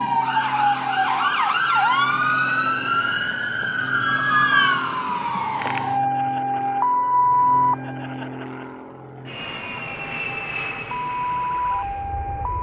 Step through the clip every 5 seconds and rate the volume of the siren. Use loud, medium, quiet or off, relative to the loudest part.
loud, loud, medium.